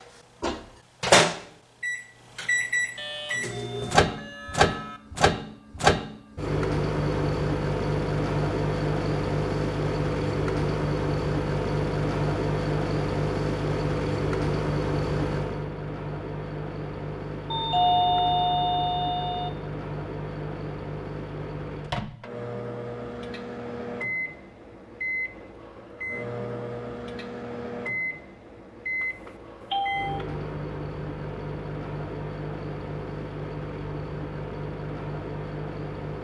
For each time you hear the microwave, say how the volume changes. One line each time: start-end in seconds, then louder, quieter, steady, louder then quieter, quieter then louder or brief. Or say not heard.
0.0-36.1 quieter.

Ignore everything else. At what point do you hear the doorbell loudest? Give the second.
18 s.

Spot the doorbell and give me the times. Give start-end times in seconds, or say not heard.
3.0-5.0, 17.5-19.5, 29.0-30.2.